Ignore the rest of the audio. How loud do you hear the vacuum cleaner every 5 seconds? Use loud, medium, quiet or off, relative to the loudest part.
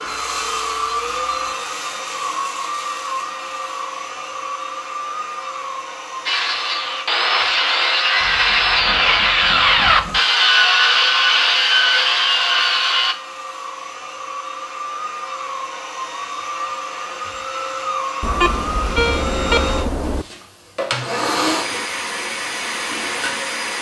loud, medium, medium, loud, loud.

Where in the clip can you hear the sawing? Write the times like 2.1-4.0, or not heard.
6.2-13.2.